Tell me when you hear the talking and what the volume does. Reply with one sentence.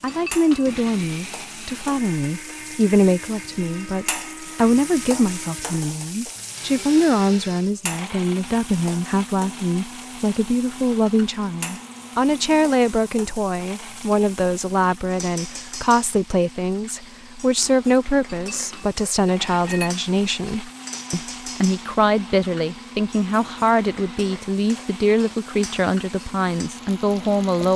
The talking can be heard from 0.0 to 27.7 s, at a steady volume.